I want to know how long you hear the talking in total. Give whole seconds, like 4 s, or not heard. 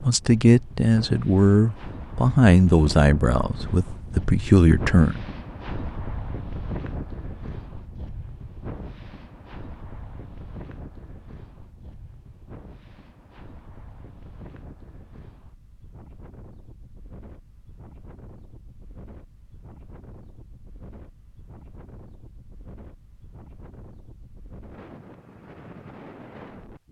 5 s.